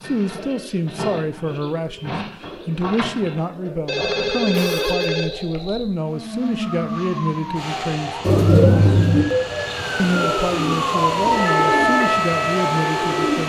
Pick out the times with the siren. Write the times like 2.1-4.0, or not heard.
6.6-13.4.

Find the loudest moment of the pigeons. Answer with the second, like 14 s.
9 s.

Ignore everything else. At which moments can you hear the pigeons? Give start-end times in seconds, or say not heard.
0.0-5.0, 8.2-13.4.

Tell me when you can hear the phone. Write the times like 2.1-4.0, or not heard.
3.9-6.0.